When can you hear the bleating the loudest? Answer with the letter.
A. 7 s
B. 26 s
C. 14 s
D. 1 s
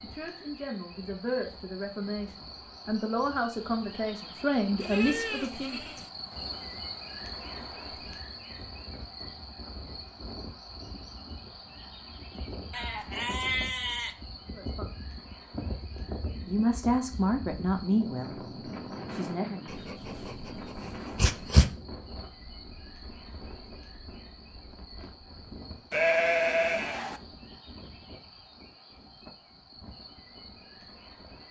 B.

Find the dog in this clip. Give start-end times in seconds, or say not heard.
19.6-21.7.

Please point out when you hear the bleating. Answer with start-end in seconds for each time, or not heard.
4.8-6.1, 12.7-14.2, 25.9-27.2.